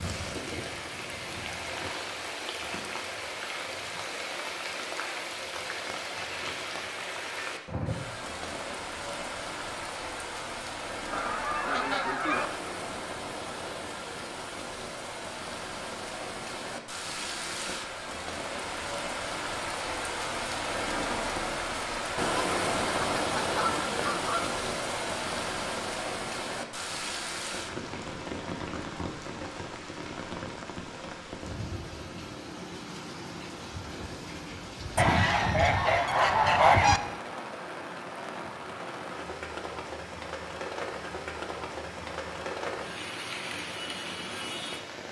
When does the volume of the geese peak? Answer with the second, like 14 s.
37 s.